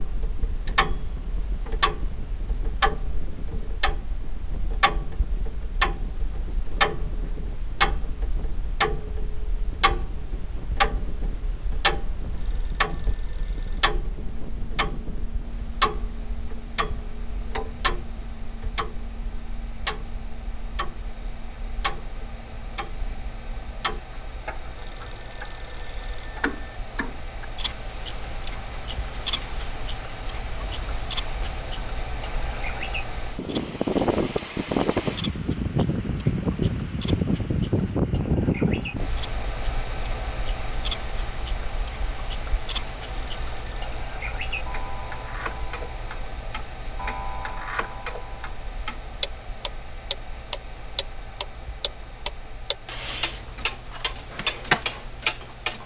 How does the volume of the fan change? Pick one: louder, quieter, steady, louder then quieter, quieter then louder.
louder then quieter.